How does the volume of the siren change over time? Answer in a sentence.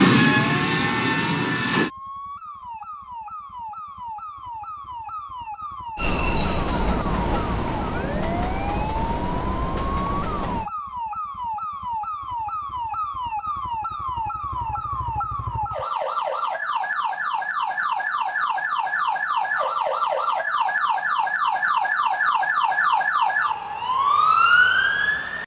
The volume of the siren goes up.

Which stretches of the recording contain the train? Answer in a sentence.
You can hear the train from 0.0 to 1.9 s and from 6.0 to 10.7 s.